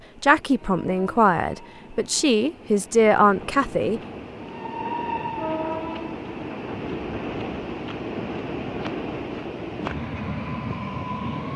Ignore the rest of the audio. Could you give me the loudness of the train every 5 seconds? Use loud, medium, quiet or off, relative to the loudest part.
medium, loud, loud.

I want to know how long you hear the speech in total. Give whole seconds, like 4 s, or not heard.
4 s.